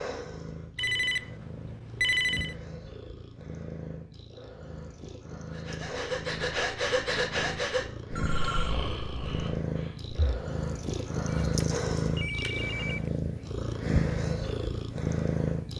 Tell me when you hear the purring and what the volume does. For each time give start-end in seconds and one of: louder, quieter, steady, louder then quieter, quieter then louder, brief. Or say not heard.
0.0-15.7 louder.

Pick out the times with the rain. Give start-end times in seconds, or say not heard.
not heard.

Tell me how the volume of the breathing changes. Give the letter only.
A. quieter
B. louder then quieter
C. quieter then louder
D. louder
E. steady
A.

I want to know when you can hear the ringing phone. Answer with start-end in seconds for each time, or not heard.
0.8-2.5, 8.1-8.8, 11.2-13.0.